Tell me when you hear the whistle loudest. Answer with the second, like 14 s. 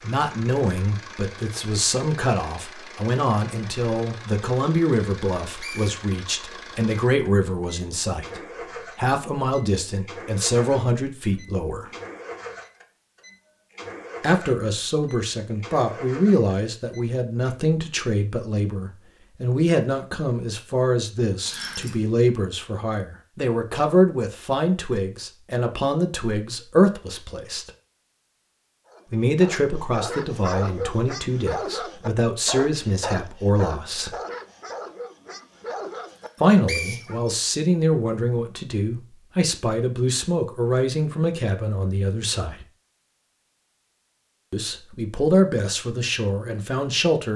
37 s.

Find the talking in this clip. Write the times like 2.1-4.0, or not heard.
0.0-11.9, 14.2-27.7, 29.1-34.1, 36.4-42.6, 44.5-47.3.